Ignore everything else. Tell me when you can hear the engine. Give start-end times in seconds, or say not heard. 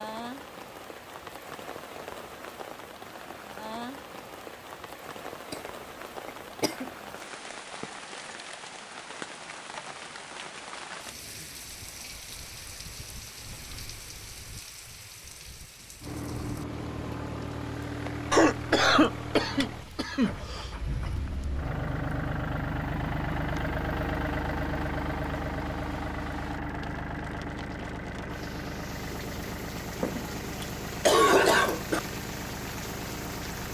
16.0-33.7.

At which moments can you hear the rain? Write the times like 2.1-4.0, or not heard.
0.0-33.7.